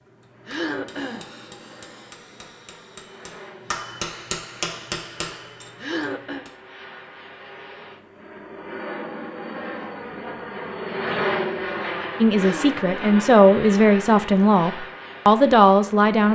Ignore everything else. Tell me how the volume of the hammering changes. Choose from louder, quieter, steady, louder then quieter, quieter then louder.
louder then quieter.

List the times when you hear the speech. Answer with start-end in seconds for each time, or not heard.
12.2-16.3.